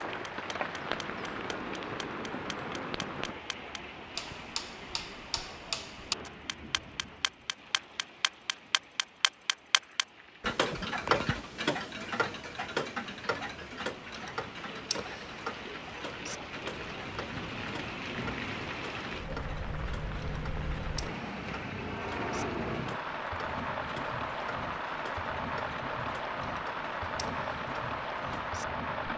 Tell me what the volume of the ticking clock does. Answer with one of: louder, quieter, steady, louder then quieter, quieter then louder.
louder then quieter.